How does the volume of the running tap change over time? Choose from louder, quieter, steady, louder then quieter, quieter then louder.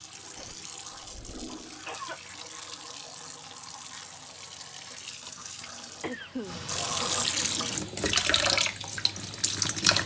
louder.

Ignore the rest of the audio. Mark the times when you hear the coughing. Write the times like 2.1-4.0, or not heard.
0.3-2.2, 5.6-6.5.